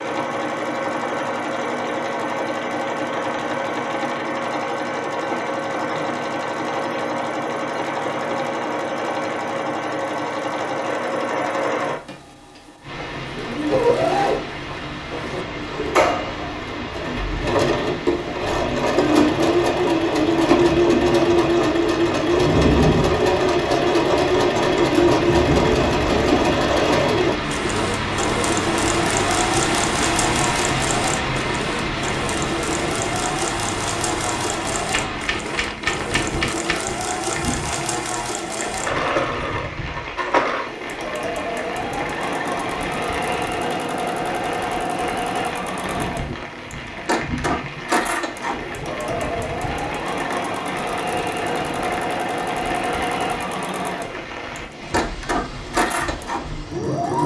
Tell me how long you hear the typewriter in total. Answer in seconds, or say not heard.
2 s.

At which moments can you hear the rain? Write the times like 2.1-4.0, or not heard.
12.8-57.2.